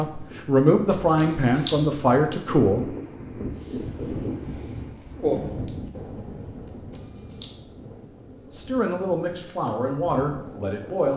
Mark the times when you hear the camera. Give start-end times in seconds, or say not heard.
1.1-1.8, 6.7-7.5.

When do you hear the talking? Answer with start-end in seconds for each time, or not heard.
0.0-2.9, 8.5-11.1.